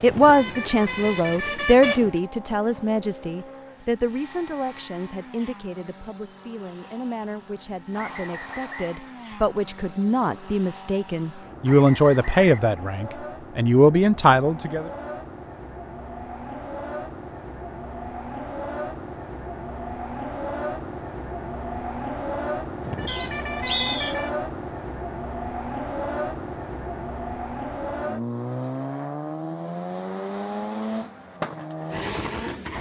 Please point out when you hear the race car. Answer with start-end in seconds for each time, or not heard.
0.0-32.7.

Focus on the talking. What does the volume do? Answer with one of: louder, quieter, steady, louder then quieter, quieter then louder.
quieter then louder.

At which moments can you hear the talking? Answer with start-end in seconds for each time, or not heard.
0.0-14.9.